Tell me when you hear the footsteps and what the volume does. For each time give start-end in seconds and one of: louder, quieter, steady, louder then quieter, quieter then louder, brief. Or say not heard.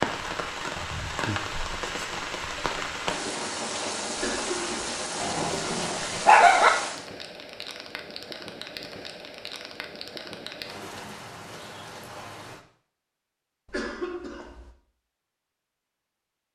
not heard.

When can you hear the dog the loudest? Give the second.
6 s.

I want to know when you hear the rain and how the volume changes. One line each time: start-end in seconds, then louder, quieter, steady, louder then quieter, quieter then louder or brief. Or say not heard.
0.0-12.7 quieter.